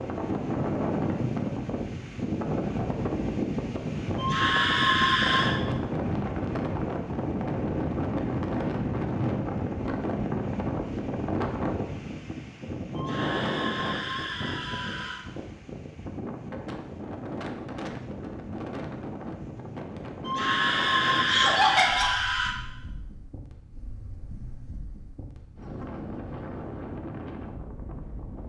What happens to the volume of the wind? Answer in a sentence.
The volume of the wind goes down.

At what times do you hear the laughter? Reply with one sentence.
The laughter can be heard from 21.2 to 22.1 s.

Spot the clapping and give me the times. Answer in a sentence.
The clapping can't be heard in this clip.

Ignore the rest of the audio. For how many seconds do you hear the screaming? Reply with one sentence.
The screaming can be heard for 6 seconds in total.